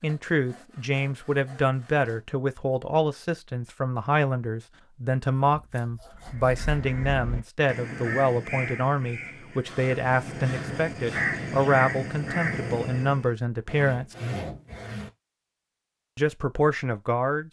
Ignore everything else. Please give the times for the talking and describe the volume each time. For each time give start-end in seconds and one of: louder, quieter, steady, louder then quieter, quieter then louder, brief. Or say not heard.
0.0-14.2 steady
16.1-17.4 brief.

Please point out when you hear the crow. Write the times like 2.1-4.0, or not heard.
6.2-13.3.